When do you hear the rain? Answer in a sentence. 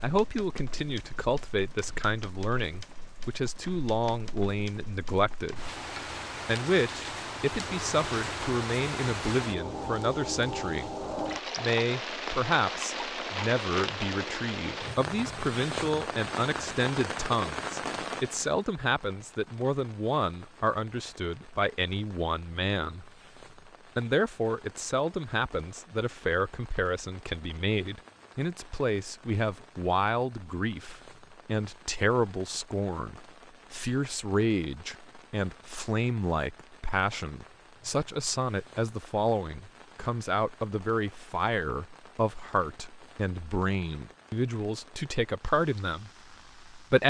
You can hear the rain from 0.0 to 47.0 s.